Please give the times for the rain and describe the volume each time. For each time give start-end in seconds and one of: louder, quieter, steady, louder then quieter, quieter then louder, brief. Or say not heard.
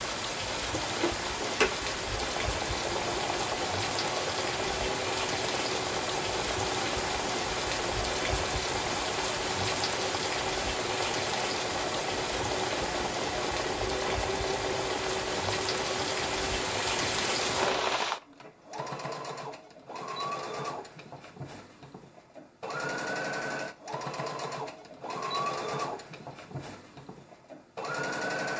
0.0-18.2 steady.